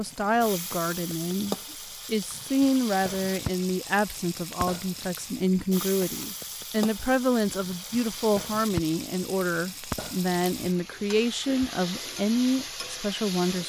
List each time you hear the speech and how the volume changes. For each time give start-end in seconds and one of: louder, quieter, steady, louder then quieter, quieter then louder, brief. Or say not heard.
0.0-13.6 steady.